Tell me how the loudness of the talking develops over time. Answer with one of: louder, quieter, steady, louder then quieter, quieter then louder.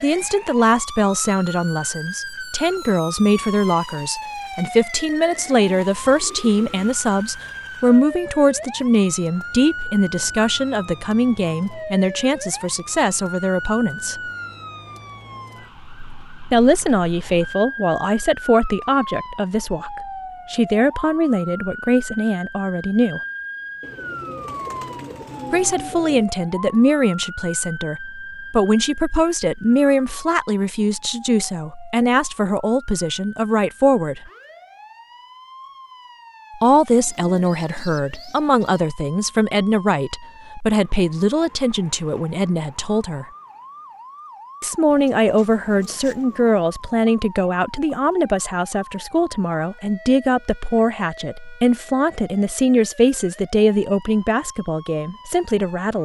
steady.